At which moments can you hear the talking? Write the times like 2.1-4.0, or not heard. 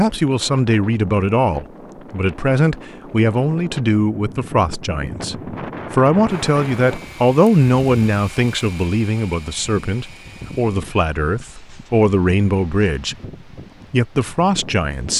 0.0-13.2, 13.9-15.1.